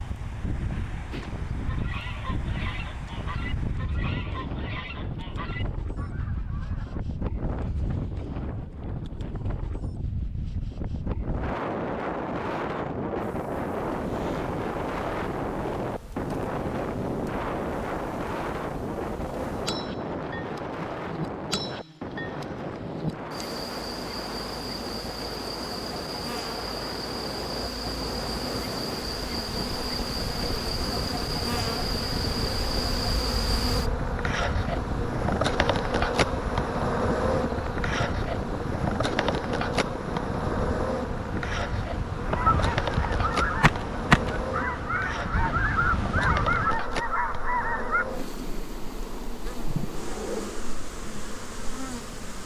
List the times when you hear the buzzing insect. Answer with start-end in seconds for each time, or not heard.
13.2-52.4.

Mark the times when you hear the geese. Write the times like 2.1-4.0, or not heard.
1.1-7.0, 42.1-48.0.